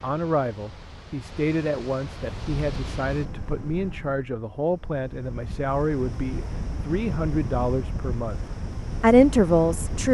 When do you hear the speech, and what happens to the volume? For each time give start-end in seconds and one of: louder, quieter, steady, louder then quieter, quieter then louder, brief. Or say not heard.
0.0-8.4 steady
9.0-10.0 brief.